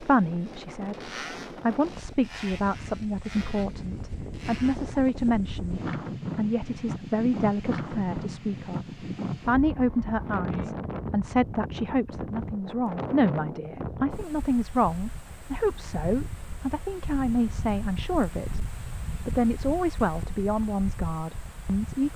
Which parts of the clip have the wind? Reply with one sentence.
The wind can be heard from 0.0 to 22.1 s.